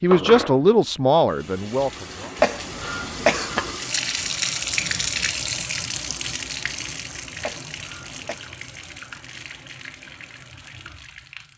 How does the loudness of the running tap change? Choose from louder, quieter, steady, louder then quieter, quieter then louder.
louder then quieter.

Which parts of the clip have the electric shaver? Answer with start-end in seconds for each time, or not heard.
not heard.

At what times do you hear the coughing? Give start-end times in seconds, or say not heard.
2.4-3.7, 7.4-8.4.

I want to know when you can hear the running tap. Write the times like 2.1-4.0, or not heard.
0.0-11.5.